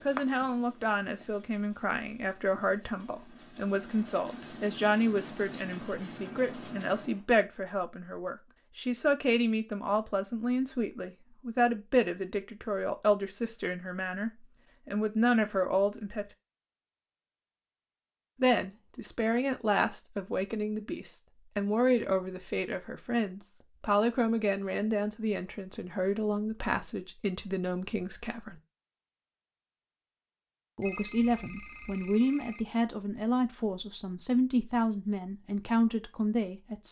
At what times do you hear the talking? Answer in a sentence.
The talking can be heard from 0.0 to 16.2 s, from 18.4 to 28.6 s and from 30.8 to 36.8 s.